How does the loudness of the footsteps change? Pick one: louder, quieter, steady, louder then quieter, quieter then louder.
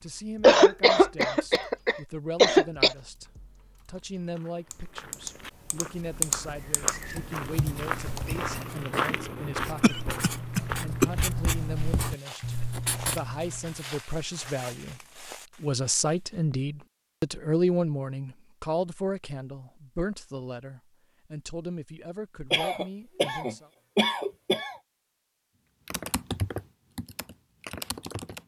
louder then quieter.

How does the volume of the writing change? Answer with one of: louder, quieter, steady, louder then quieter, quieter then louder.
louder.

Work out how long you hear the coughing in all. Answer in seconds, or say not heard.
6 s.